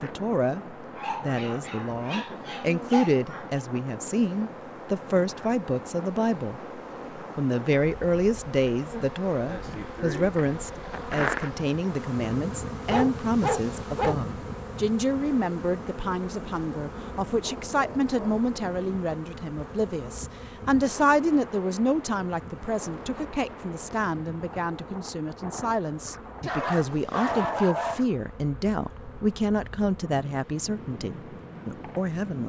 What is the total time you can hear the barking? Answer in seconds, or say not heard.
7 s.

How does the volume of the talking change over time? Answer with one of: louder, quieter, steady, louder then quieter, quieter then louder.
steady.